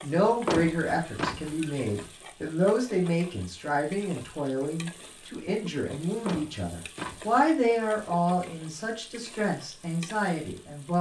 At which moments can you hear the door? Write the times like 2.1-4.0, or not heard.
0.2-2.0, 6.0-7.8.